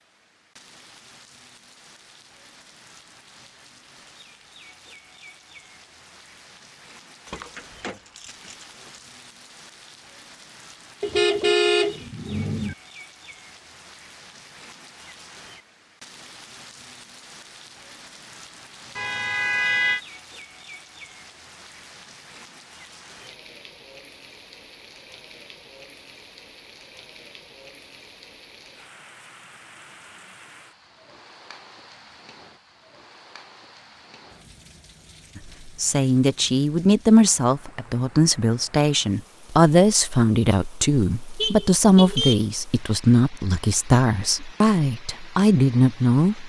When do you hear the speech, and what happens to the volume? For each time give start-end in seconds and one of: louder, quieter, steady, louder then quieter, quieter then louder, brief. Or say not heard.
35.4-46.4 steady.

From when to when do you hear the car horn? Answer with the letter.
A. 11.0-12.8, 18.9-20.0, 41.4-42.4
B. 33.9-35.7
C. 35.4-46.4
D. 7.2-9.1
A.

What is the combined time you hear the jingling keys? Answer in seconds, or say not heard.
2 s.